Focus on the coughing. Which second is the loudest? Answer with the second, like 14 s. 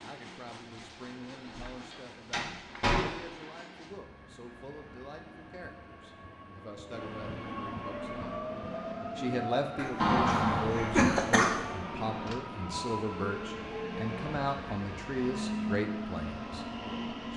11 s.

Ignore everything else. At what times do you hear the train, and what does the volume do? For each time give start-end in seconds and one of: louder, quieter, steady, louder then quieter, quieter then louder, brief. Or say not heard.
0.0-17.3 louder.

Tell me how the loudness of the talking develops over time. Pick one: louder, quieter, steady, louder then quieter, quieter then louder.
louder.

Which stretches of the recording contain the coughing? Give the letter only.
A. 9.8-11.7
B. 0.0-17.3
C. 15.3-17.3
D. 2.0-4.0
A.